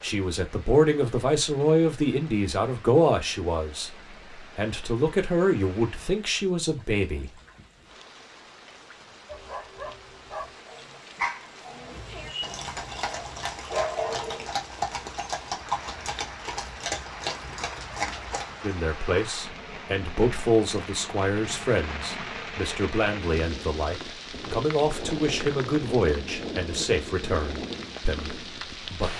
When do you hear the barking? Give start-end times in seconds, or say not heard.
9.2-14.6.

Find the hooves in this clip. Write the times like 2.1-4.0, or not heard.
11.8-18.8.